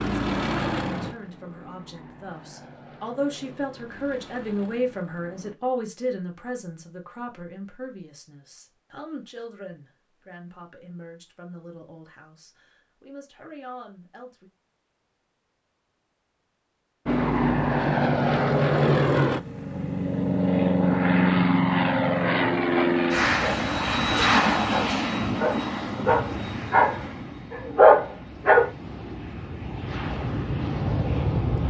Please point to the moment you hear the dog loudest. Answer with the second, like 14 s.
28 s.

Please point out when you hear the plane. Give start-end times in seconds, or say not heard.
0.0-5.5, 17.1-31.6.